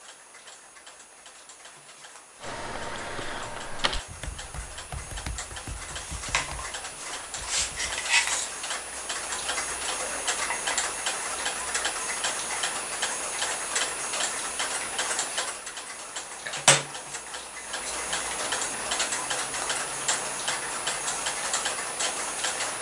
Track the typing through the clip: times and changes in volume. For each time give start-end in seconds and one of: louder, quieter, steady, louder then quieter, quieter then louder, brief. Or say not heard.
2.4-8.0 quieter.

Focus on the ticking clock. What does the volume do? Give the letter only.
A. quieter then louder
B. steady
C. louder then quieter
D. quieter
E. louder
E.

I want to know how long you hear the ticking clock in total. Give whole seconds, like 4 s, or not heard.
23 s.